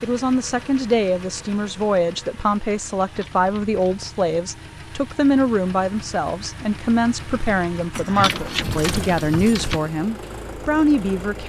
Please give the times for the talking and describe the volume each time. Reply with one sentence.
The talking can be heard from 0.0 to 11.4 s, at a steady volume.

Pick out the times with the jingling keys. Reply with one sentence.
The jingling keys can be heard from 3.0 to 4.0 s and from 7.9 to 9.8 s.